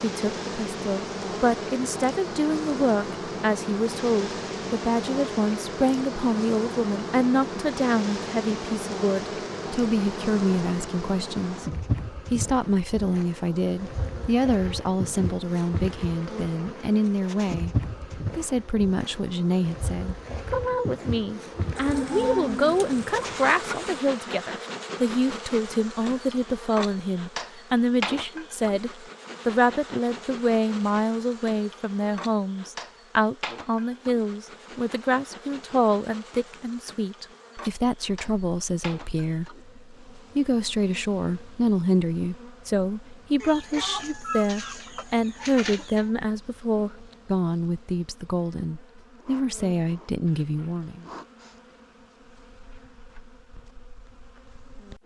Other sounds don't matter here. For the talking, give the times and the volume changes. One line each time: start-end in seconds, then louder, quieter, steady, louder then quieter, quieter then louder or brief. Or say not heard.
0.0-51.0 steady.